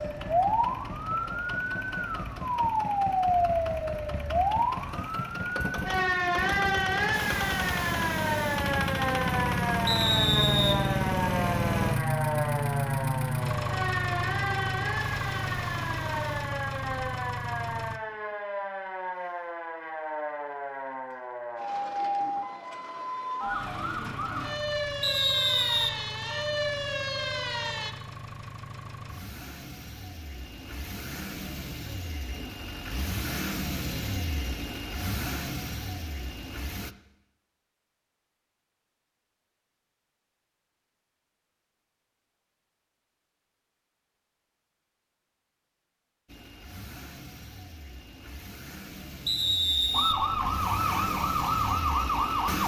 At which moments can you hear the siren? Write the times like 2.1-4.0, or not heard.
0.0-27.9, 49.9-52.6.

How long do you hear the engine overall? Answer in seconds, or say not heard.
38 s.